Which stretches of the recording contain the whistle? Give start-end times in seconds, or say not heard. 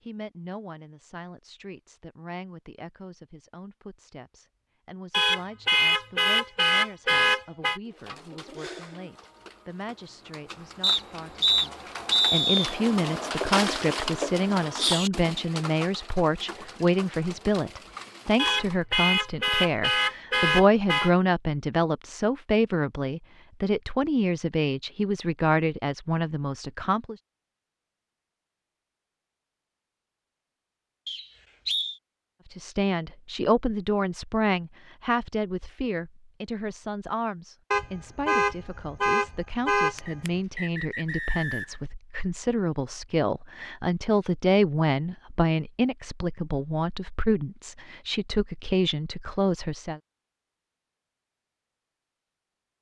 10.8-12.8, 31.1-32.0, 40.0-41.9.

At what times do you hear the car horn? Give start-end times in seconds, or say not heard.
5.1-7.8, 18.4-21.1, 37.7-40.3.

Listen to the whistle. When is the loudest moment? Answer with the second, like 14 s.
12 s.